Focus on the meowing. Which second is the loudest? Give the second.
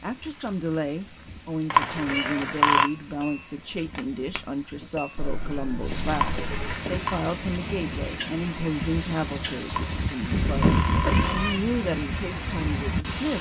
11 s.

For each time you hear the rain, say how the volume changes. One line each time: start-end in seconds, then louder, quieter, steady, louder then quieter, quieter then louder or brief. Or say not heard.
0.0-13.3 louder.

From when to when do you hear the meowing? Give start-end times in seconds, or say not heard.
1.9-2.4, 5.2-6.8, 10.3-11.6.